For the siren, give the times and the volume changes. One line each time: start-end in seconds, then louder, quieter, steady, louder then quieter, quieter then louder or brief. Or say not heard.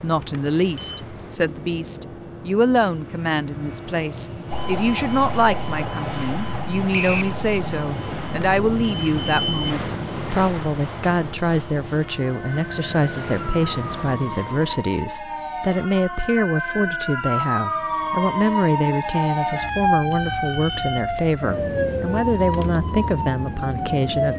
4.5-24.3 quieter then louder.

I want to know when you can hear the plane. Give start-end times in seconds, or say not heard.
0.0-14.9.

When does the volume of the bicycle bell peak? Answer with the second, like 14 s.
9 s.